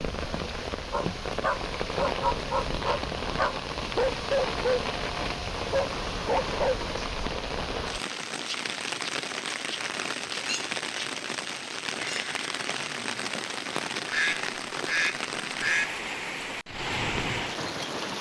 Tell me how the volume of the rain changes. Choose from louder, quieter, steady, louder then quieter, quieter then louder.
steady.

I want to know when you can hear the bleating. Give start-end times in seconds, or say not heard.
not heard.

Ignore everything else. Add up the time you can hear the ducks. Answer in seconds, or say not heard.
2 s.